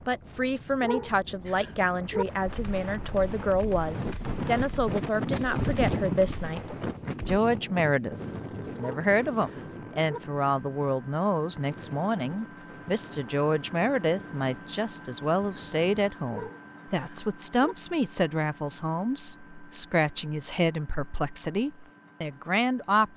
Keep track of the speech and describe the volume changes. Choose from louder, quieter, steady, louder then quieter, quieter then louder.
steady.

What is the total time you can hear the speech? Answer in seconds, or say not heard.
23 s.